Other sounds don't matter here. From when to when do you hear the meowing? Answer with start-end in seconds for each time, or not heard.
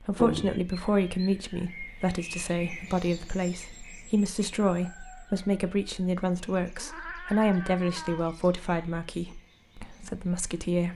0.1-0.6, 6.8-8.2.